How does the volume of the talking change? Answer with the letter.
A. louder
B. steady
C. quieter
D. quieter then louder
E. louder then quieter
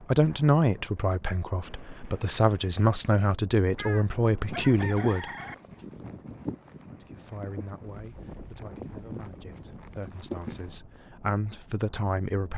D.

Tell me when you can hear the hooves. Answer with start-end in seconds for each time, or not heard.
4.5-10.8.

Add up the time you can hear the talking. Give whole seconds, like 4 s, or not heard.
11 s.